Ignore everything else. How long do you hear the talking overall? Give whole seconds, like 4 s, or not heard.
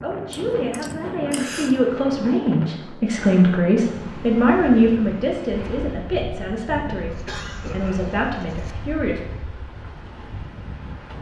9 s.